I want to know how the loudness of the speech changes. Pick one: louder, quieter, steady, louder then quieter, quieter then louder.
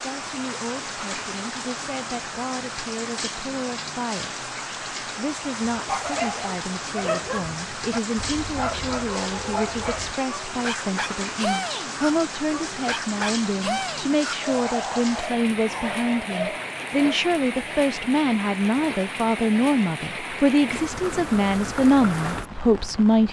louder.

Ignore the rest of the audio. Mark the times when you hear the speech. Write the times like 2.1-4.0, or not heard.
0.0-23.2.